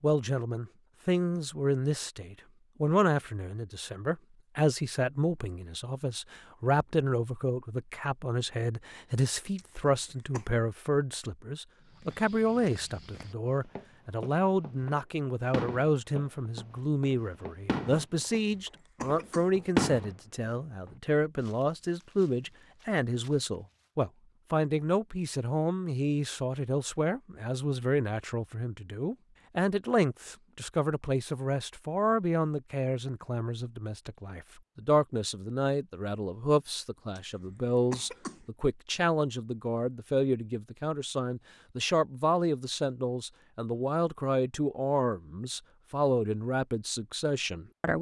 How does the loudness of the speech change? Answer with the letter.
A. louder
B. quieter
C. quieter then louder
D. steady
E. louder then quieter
D.